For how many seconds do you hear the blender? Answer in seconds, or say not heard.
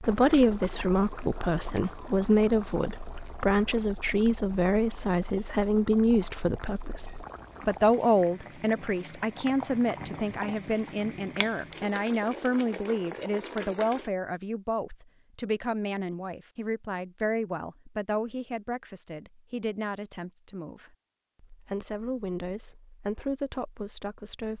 not heard.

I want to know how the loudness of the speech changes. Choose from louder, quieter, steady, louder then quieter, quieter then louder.
quieter.